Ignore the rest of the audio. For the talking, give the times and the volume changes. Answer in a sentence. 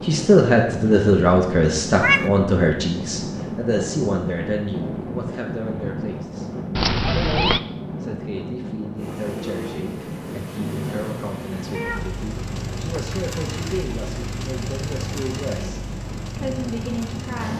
You can hear the talking from 0.0 to 17.5 s, getting quieter.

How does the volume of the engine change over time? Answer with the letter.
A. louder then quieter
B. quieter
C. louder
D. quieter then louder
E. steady
E.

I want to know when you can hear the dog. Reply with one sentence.
The dog can't be heard in this clip.